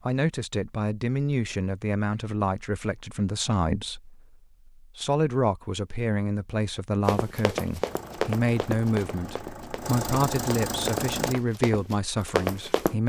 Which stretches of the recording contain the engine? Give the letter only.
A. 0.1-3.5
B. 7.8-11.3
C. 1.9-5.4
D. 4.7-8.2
B.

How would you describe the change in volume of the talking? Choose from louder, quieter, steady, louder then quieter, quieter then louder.
steady.